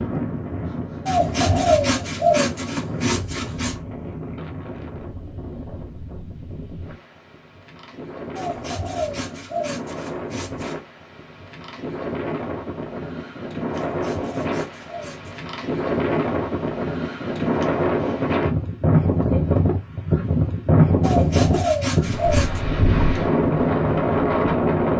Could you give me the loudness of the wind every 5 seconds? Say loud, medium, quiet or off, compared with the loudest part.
medium, quiet, medium, loud, loud.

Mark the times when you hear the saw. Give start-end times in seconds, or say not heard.
1.1-3.8, 8.3-10.8, 13.7-15.4, 21.0-22.6.